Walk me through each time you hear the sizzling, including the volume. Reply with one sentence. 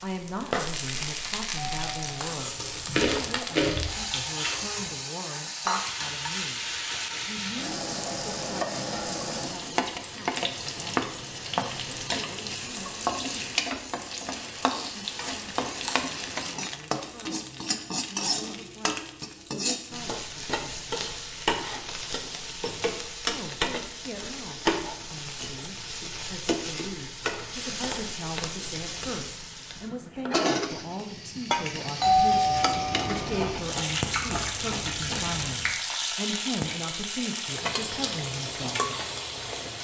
You can hear the sizzling from 0.0 to 39.7 s, at a steady volume.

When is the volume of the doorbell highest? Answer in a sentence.
The loudest moment of the doorbell is at 32 seconds.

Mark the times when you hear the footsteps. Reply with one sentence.
You can't hear the footsteps here.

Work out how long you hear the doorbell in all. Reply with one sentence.
You can hear the doorbell for 3 seconds altogether.